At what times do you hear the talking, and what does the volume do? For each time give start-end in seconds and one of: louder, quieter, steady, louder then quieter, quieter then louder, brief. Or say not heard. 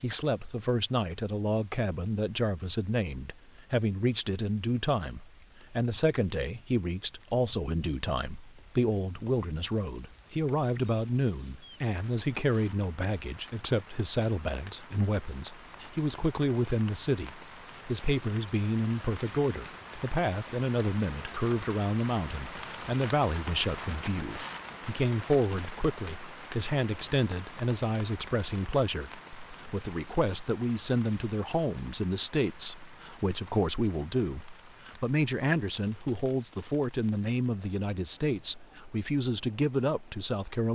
0.0-40.7 steady.